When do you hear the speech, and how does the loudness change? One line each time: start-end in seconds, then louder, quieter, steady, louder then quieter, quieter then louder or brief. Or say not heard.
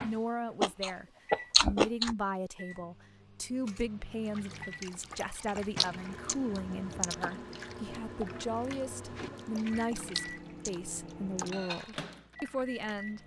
0.0-13.2 steady.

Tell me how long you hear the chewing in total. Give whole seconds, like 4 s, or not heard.
6 s.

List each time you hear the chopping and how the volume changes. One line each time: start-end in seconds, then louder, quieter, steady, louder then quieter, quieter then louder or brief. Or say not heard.
not heard.